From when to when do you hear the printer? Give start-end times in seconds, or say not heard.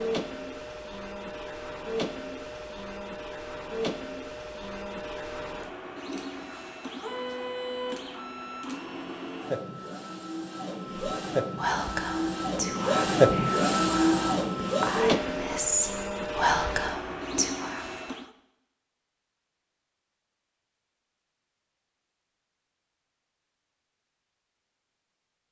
0.0-18.3.